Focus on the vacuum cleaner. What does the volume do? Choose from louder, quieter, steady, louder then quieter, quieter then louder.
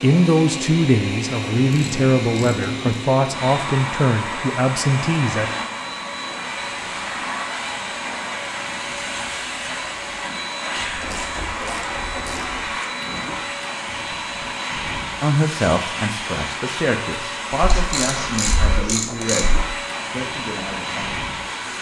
steady.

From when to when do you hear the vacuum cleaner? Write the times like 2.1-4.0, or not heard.
0.0-21.7.